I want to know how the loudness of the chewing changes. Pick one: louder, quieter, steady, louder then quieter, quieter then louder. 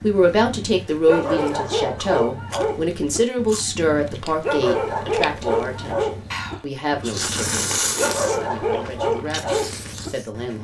louder then quieter.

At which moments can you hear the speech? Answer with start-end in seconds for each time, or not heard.
0.0-7.7, 8.3-10.5.